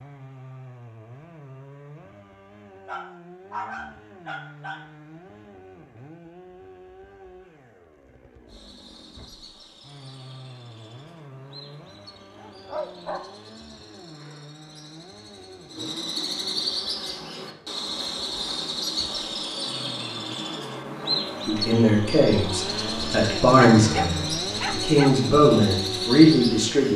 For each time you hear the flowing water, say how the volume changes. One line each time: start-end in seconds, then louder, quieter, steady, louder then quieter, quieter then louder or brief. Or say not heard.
not heard.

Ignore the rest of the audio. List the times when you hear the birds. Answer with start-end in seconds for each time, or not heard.
8.4-26.9.